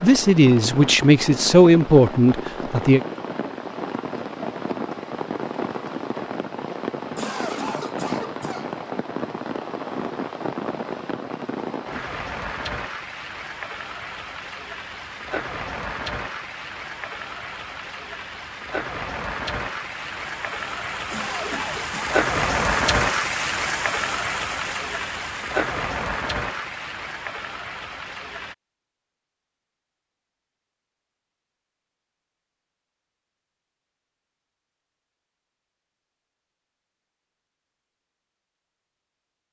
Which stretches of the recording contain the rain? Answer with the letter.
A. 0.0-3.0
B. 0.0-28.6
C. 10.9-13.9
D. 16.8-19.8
B.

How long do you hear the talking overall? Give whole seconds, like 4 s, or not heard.
3 s.